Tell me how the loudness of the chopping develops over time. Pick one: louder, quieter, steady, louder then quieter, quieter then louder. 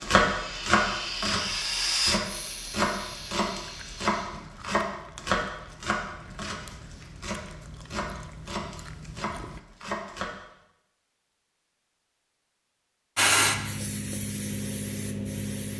quieter.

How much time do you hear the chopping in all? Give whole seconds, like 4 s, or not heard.
10 s.